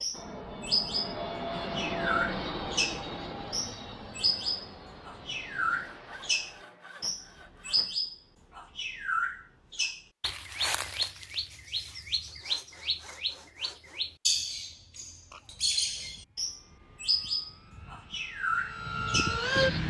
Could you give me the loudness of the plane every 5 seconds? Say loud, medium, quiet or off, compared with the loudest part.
loud, quiet, off, loud.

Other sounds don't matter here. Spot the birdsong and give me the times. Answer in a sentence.
You can hear the birdsong from 0.0 to 19.8 s.